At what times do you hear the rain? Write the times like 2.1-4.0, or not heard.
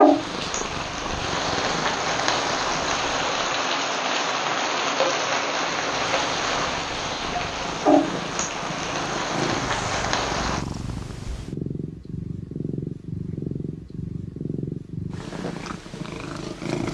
0.0-10.7.